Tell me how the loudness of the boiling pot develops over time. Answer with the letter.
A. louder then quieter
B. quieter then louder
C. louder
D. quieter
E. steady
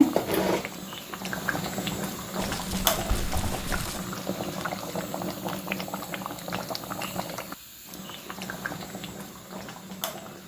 D.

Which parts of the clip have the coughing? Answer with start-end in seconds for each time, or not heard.
3.0-3.9.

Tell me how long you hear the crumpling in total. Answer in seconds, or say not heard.
2 s.